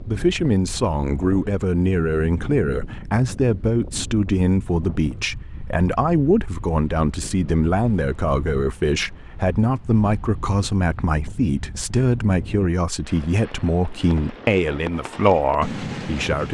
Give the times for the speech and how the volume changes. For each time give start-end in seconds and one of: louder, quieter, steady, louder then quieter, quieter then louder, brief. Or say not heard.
0.0-16.4 steady.